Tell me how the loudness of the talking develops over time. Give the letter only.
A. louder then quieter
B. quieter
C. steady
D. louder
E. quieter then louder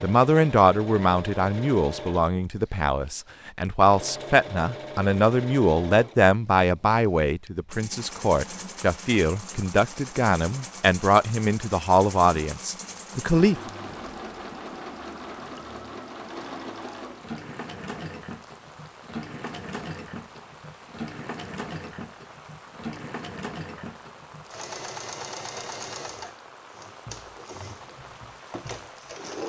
C.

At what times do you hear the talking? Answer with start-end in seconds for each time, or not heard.
0.0-13.7.